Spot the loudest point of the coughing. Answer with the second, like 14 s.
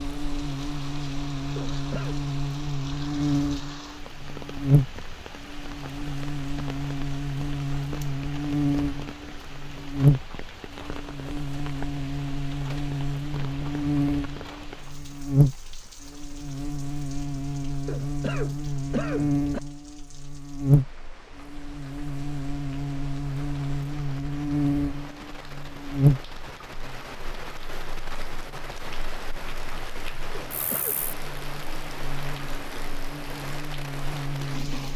19 s.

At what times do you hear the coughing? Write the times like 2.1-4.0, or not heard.
1.6-2.1, 17.9-19.6, 30.3-31.1.